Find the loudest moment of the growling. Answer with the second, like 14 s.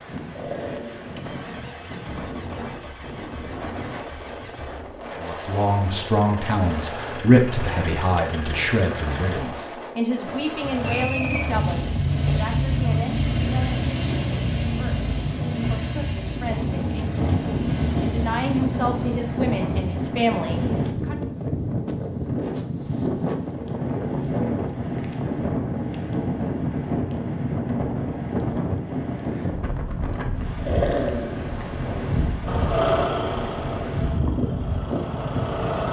31 s.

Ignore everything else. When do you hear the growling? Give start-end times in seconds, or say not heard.
0.3-1.2, 30.6-31.6.